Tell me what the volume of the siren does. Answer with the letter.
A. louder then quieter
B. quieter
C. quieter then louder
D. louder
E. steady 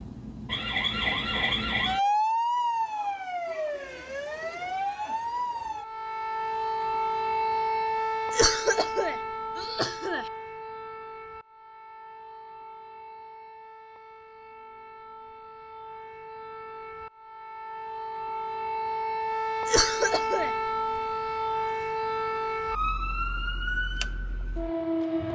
C.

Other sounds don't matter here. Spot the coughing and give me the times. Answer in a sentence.
The coughing can be heard from 8.3 to 10.2 s and from 19.6 to 20.5 s.